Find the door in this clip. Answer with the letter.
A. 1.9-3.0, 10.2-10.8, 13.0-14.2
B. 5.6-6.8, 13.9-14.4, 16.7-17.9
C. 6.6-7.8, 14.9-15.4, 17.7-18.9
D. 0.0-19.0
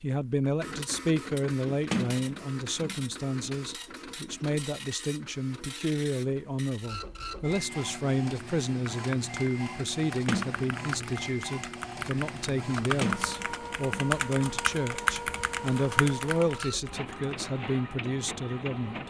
A.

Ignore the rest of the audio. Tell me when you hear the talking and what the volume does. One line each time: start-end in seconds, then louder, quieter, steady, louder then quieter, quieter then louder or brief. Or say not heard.
0.0-19.0 steady.